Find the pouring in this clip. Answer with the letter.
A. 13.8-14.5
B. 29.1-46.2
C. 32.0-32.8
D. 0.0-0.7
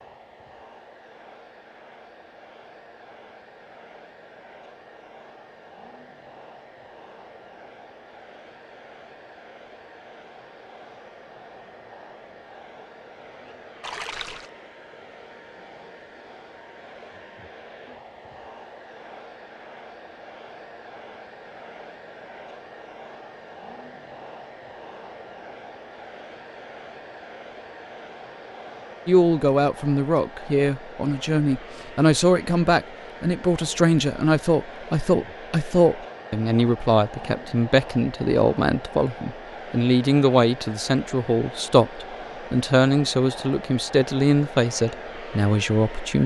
A.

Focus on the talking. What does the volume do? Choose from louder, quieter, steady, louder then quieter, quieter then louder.
steady.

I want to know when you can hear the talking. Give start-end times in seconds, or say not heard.
29.1-46.2.